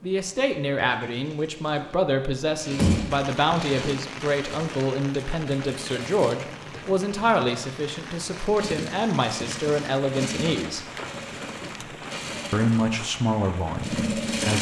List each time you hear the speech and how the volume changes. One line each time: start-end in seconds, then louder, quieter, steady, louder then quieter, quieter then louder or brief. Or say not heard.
0.0-10.9 steady
12.5-14.5 brief.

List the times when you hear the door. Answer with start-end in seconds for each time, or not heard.
2.8-3.5.